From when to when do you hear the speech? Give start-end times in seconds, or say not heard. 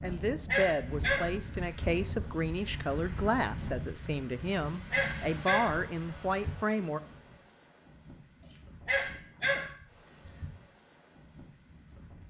0.0-7.0.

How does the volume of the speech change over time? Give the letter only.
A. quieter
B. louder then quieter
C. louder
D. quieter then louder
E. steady
E.